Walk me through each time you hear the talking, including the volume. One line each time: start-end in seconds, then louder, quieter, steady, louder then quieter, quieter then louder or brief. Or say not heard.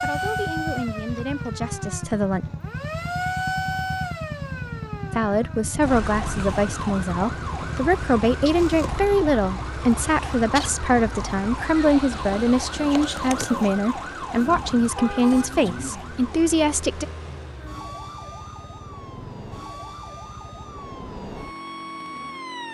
0.0-2.5 brief
5.2-17.1 steady.